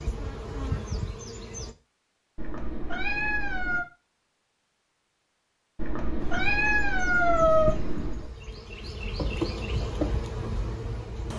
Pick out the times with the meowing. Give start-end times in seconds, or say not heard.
2.4-3.9, 5.8-8.3.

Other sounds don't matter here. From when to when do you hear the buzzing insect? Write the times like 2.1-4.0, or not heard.
0.0-1.7, 6.2-11.3.